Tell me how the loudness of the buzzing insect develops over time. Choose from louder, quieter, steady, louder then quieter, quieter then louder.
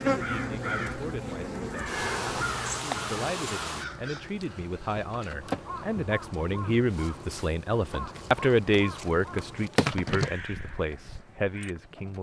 quieter then louder.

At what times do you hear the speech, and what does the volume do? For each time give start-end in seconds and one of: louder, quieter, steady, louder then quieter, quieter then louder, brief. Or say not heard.
0.0-12.1 louder then quieter.